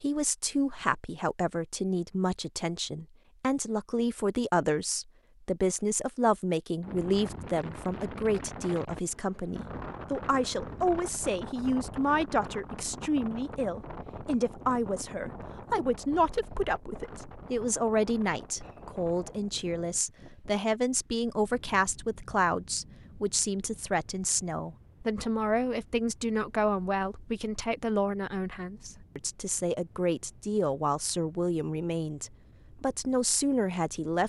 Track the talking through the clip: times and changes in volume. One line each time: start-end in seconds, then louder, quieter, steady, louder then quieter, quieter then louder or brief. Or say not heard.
0.0-34.2 steady.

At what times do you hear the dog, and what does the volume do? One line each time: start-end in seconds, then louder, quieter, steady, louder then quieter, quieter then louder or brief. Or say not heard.
not heard.